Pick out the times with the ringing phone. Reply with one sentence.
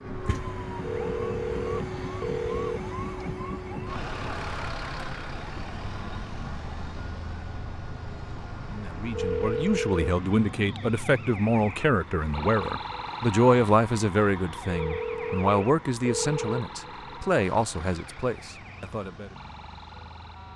The ringing phone can be heard from 0.8 to 2.8 s, from 9.1 to 10.2 s and from 14.7 to 16.6 s.